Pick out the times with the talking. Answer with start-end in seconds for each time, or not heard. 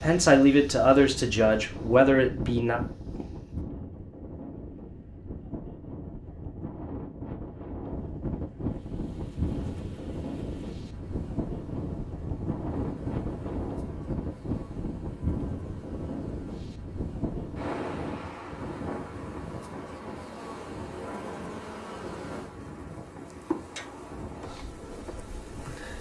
0.0-2.8.